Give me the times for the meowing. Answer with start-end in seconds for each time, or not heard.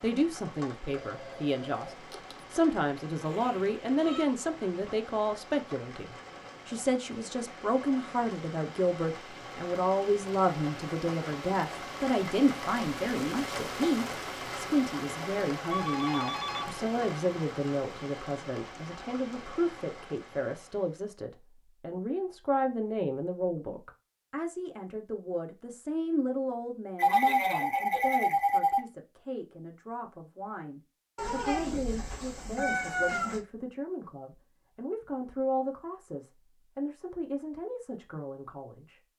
3.2-4.3, 31.1-33.4.